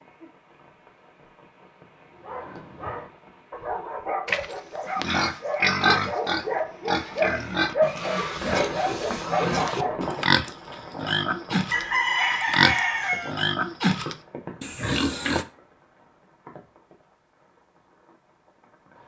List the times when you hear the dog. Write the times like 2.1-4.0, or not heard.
2.1-10.2.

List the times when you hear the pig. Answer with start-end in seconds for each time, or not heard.
4.2-15.4.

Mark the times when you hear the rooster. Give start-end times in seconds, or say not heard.
11.7-13.3.